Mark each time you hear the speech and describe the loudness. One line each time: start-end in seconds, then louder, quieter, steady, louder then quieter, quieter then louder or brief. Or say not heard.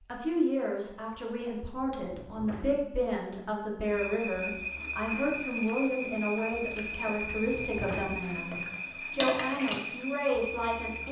0.1-11.0 steady.